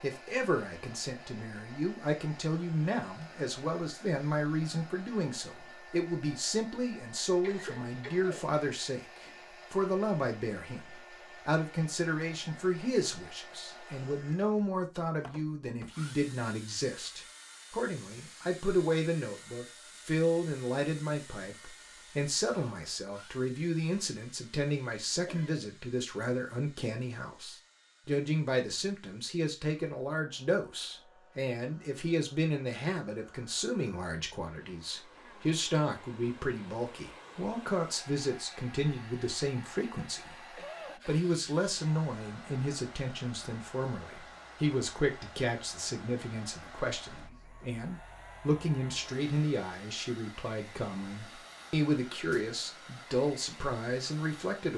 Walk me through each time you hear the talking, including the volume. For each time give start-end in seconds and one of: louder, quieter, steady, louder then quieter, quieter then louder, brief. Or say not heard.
0.0-54.7 steady.